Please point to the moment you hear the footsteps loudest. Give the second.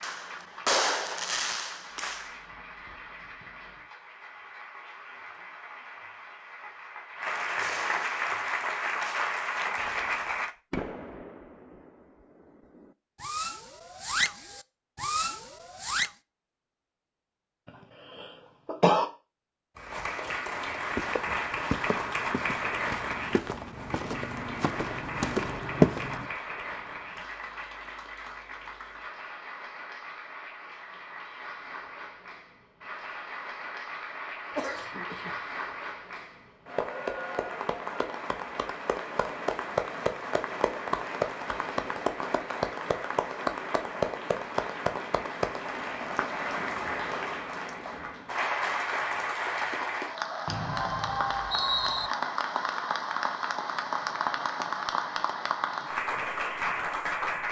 26 s.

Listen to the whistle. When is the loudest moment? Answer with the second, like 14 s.
52 s.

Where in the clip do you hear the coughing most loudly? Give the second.
19 s.